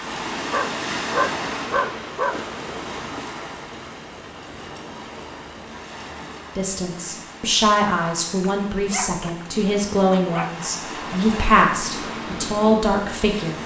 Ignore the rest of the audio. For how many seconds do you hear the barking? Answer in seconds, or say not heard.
4 s.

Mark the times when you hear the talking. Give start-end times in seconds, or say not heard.
6.5-13.6.